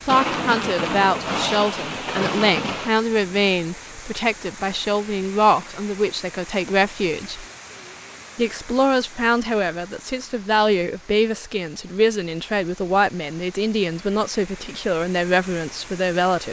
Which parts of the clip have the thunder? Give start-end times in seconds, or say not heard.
0.1-3.5.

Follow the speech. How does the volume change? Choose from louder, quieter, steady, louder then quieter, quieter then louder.
steady.